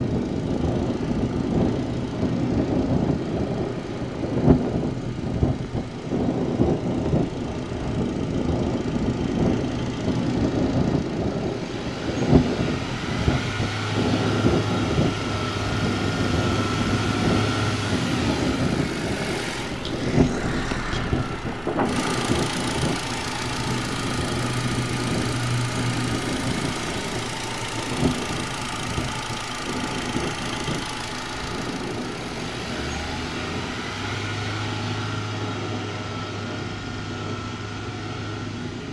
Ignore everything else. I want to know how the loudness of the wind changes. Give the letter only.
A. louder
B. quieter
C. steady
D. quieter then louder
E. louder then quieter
B.